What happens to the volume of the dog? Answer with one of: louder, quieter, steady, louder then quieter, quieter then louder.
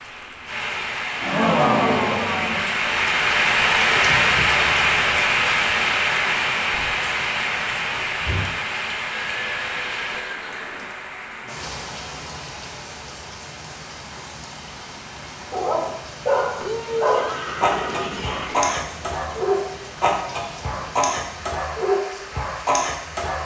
steady.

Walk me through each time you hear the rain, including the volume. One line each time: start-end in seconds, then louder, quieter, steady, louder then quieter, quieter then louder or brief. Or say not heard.
0.0-23.3 quieter.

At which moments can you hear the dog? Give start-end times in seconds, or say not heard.
15.4-23.3.